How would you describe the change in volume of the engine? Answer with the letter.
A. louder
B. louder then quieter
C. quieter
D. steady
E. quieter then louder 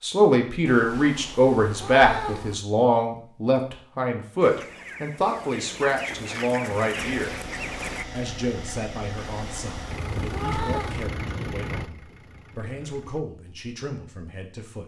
B.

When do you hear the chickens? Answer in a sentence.
You can hear the chickens from 4.4 to 8.1 s.